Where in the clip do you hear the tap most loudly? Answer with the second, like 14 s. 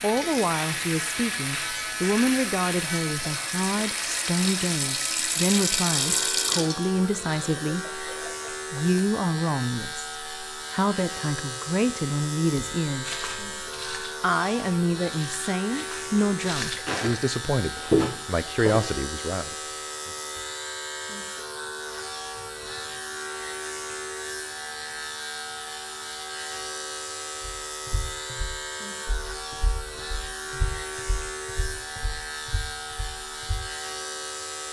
6 s.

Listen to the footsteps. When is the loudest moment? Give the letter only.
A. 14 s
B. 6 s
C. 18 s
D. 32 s
C.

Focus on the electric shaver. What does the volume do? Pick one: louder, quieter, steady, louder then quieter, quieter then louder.
steady.